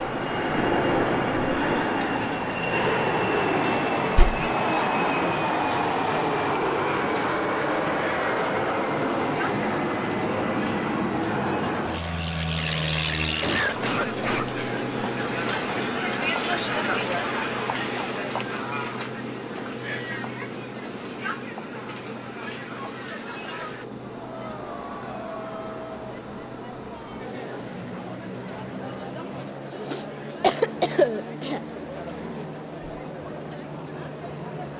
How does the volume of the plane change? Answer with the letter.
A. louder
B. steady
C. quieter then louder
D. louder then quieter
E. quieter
E.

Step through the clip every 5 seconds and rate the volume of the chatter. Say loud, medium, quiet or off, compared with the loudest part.
medium, medium, medium, loud, medium, medium, medium.